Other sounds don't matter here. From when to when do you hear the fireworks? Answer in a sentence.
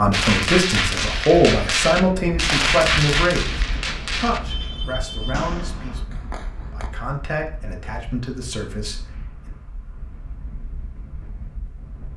The fireworks can be heard from 0.1 to 6.9 s.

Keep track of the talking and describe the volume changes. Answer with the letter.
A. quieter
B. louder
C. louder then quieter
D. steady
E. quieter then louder
A.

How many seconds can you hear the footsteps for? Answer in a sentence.
The footsteps can't be heard in this clip.